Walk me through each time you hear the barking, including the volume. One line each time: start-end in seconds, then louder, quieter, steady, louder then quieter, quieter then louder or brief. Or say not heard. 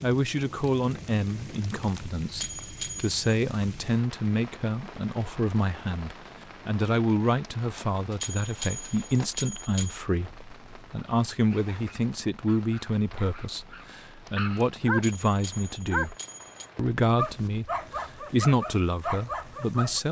11.5-20.0 louder.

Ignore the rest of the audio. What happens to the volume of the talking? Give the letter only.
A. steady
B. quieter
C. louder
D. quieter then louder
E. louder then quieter
A.